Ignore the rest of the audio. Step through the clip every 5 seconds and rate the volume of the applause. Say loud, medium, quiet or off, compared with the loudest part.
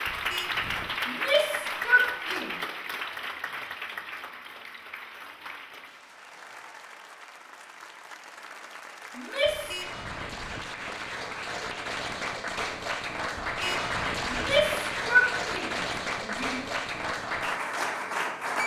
loud, quiet, loud, loud.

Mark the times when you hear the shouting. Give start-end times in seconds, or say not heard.
1.1-2.5, 9.2-9.8, 14.2-16.7.